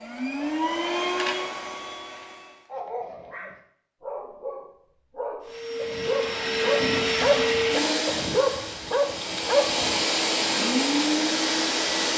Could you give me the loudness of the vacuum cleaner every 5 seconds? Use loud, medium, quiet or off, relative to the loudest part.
medium, loud, loud.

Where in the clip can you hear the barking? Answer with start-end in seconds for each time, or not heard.
2.7-10.1.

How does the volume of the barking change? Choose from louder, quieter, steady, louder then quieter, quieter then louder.
louder.